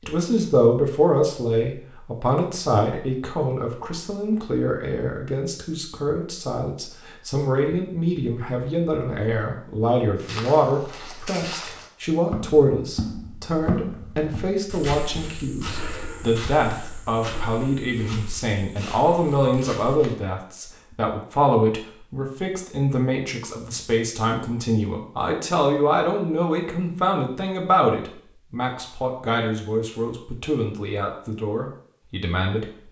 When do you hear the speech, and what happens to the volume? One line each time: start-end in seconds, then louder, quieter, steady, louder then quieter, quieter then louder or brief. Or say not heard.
0.0-32.6 steady.